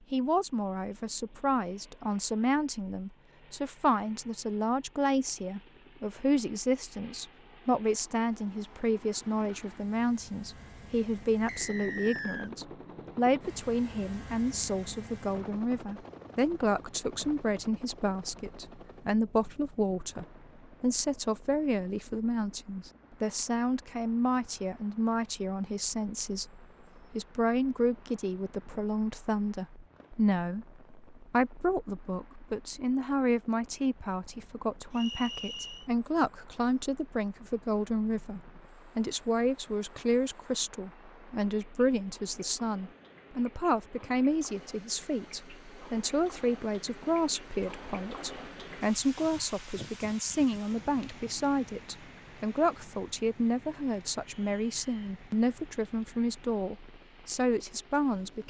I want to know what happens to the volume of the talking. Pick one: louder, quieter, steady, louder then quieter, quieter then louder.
steady.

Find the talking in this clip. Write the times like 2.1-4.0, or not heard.
0.1-58.4.